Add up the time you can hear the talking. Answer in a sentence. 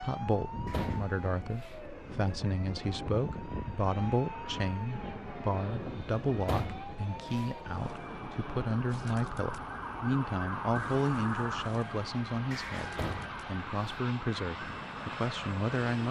You can hear the talking for 16 seconds altogether.